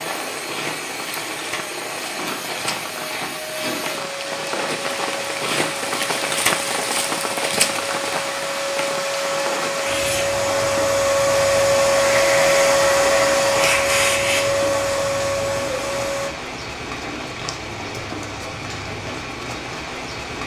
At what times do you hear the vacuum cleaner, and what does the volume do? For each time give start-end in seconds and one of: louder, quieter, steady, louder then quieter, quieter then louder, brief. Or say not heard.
0.0-16.3 louder.